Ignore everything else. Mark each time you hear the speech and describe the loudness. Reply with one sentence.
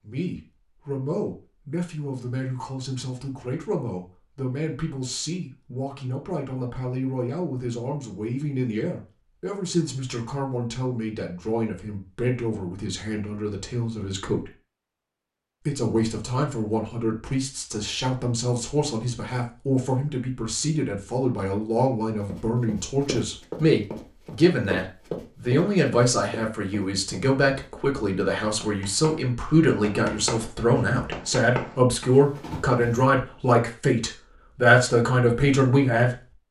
The speech can be heard from 0.0 to 14.5 s, at a steady volume; and from 15.7 to 36.2 s, getting louder.